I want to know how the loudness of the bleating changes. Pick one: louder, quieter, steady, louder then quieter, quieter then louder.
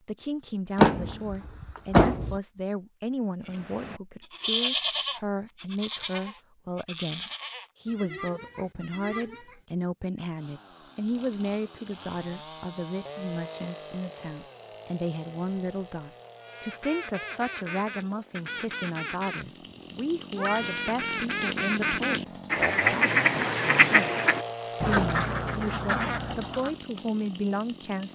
quieter.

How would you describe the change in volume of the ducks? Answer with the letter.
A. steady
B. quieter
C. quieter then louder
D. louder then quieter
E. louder
D.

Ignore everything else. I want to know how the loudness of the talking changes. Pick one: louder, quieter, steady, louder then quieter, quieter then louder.
steady.